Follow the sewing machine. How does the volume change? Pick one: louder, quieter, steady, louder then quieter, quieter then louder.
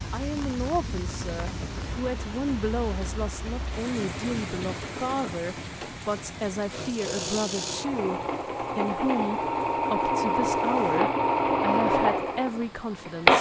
louder.